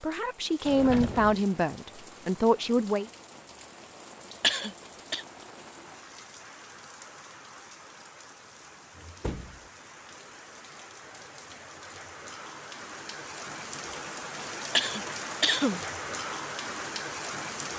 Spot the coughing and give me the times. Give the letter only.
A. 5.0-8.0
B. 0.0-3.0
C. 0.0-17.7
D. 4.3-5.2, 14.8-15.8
D.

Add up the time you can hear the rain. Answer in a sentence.
You can hear the rain for 18 seconds altogether.